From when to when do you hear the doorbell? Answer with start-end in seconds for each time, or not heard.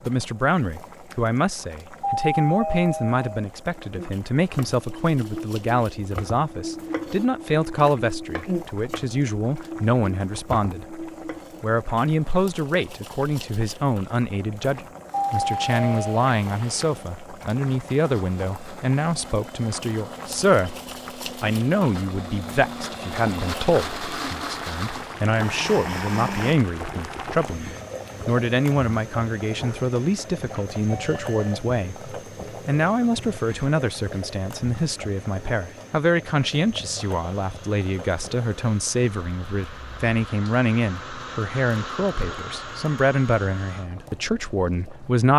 2.0-3.5, 15.1-16.2, 30.9-31.6.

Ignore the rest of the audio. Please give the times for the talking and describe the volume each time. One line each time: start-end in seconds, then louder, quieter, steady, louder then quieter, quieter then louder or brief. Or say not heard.
0.1-45.3 steady.